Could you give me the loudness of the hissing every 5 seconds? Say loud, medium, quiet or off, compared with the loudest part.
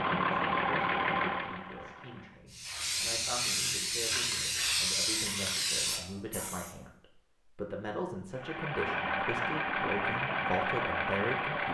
loud, loud, off.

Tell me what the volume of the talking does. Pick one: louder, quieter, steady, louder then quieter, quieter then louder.
louder.